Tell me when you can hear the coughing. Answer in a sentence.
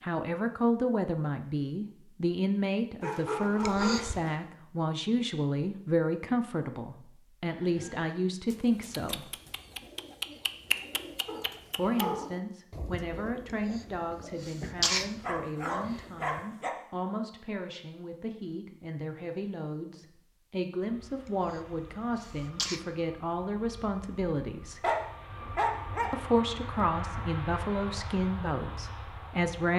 The coughing can be heard from 3.6 to 4.2 s, from 13.8 to 15.1 s and from 21.5 to 22.8 s.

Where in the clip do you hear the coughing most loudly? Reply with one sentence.
The volume of the coughing peaks at 15 seconds.